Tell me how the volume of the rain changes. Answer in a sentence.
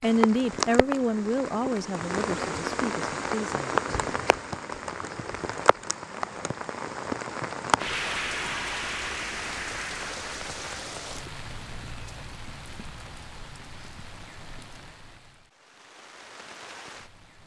The loudness of the rain goes down.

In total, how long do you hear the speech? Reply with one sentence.
You can hear the speech for 4 seconds altogether.